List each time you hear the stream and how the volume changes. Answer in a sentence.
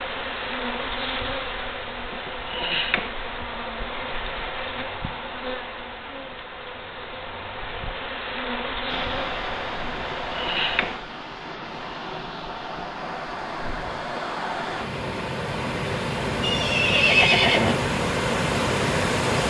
The stream can be heard from 8.8 to 19.4 s, getting louder.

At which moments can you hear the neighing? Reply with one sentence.
You can hear the neighing from 16.4 to 17.8 s.